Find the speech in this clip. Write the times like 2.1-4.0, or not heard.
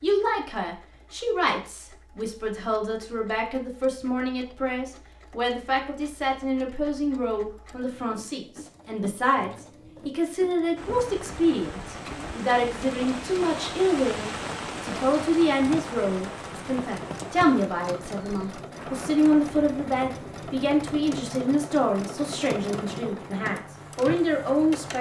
0.0-24.9.